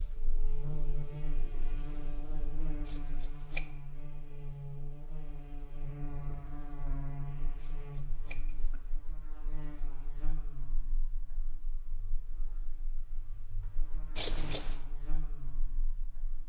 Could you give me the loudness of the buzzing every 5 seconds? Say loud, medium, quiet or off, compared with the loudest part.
loud, loud, medium, medium.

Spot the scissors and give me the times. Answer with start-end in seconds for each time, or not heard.
2.9-3.6, 7.6-8.8, 14.2-14.8.